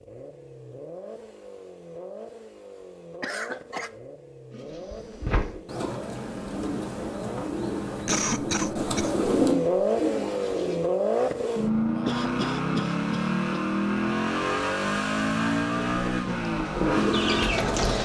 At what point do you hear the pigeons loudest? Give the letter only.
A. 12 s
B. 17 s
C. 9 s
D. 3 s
C.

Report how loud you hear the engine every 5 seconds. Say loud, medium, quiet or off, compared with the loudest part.
quiet, loud, loud, loud.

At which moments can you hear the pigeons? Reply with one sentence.
You can hear the pigeons from 4.5 to 10.8 s and from 15.9 to 17.9 s.